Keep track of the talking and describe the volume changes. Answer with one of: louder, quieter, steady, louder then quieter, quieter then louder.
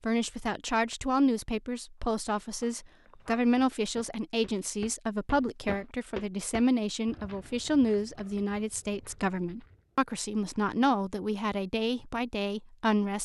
steady.